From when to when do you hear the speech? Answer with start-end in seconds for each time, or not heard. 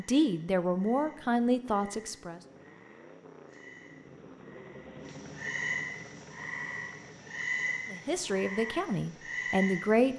0.0-2.4, 7.9-10.1.